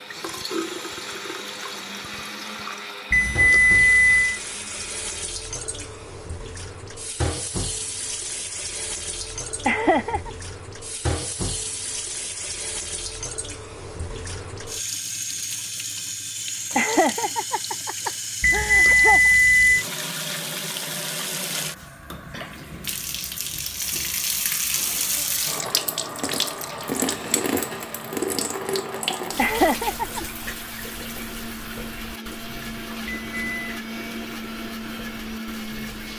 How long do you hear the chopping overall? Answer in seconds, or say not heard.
not heard.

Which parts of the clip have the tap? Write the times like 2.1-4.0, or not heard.
0.0-36.1.